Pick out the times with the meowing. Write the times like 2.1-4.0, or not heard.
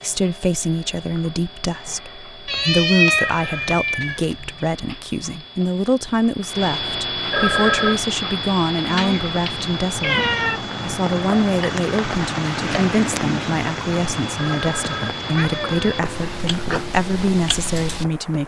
2.5-4.6, 8.9-10.6, 15.3-16.9.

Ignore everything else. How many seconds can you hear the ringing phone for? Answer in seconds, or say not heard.
2 s.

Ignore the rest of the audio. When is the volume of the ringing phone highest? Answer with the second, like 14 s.
8 s.